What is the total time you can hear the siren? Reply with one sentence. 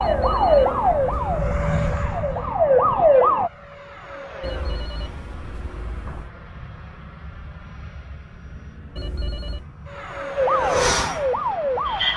You can hear the siren for 5 seconds altogether.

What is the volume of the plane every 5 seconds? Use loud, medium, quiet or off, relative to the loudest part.
medium, quiet, loud.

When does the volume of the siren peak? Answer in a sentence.
The volume of the siren peaks at 3 seconds.